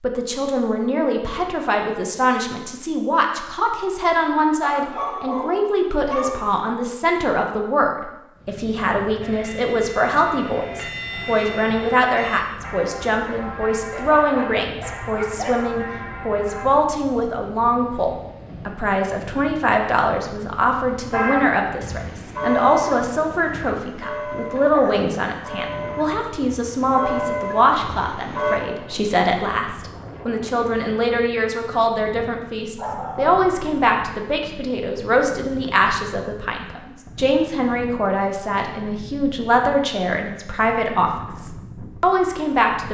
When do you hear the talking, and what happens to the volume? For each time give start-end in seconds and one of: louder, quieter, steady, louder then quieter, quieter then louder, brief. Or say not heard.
0.0-42.8 steady.